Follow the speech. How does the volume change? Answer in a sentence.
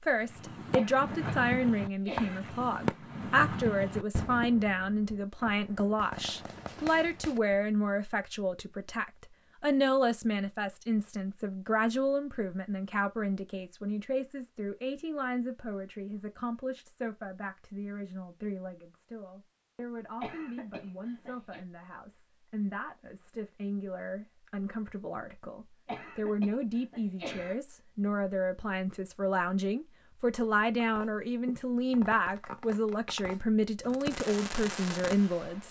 The volume of the speech goes down, then up.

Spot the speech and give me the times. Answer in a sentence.
The speech can be heard from 0.0 to 35.6 s.